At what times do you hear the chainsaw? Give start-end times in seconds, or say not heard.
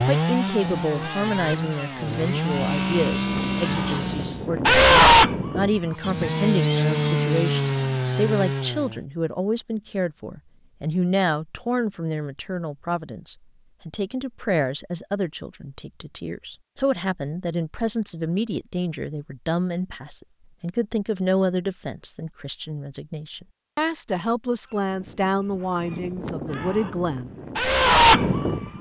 0.0-4.5, 5.9-9.1.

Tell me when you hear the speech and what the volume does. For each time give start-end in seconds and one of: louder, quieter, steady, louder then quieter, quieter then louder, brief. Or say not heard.
0.0-27.3 steady.